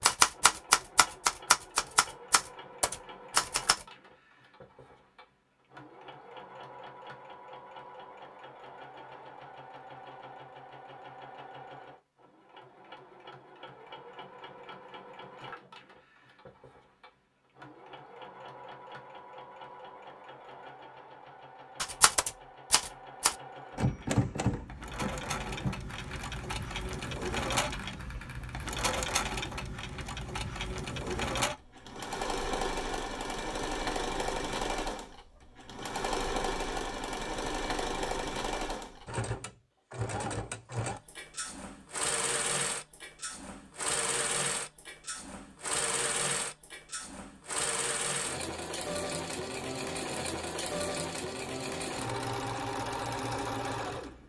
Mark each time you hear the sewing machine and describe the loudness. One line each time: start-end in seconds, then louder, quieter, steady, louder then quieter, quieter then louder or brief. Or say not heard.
0.1-54.2 louder.